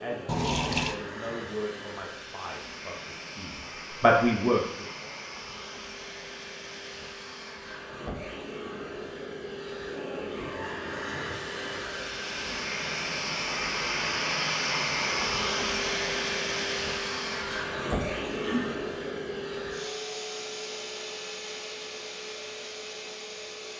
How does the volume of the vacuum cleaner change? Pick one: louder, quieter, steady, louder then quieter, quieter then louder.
louder then quieter.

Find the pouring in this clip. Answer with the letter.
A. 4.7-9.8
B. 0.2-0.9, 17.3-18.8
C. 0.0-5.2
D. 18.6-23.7
B.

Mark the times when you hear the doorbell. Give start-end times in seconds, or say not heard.
not heard.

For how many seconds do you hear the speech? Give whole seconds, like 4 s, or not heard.
5 s.